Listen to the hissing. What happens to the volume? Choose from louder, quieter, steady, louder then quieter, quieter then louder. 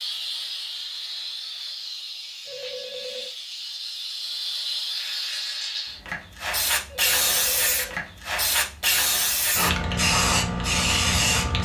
louder.